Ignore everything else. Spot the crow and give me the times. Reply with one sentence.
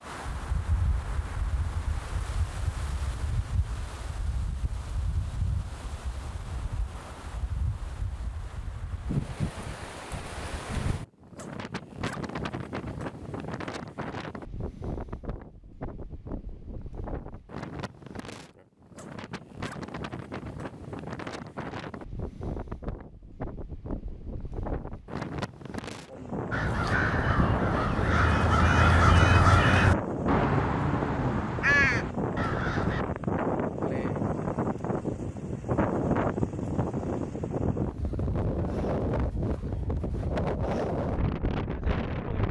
The crow can be heard from 26.5 to 33.0 s.